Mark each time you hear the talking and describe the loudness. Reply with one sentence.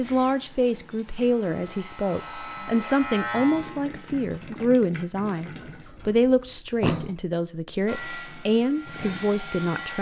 You can hear the talking from 0.0 to 9.9 s, at a steady volume.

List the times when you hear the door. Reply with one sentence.
You can hear the door from 5.7 to 7.2 s.